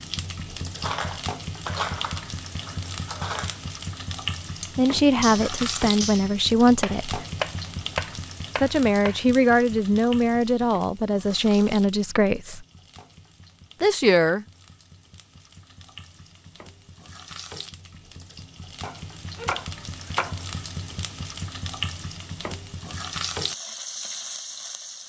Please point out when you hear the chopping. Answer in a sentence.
The chopping can be heard from 6.8 to 9.2 s and from 18.8 to 20.4 s.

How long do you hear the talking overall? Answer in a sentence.
You can hear the talking for 7 seconds altogether.